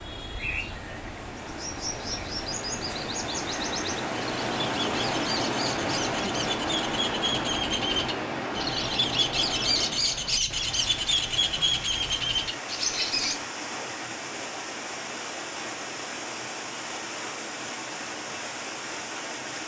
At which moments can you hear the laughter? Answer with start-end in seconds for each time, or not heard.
not heard.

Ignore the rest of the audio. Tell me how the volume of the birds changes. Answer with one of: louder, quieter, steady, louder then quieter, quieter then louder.
louder.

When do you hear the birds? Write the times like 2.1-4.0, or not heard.
0.0-13.4.